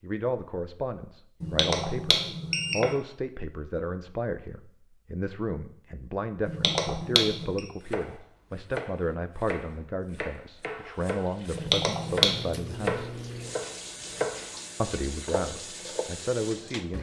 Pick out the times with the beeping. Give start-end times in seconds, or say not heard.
1.4-2.9, 6.5-7.6, 11.5-12.5.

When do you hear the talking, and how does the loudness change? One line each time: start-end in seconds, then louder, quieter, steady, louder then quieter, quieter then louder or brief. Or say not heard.
0.0-13.1 steady
14.8-16.9 brief.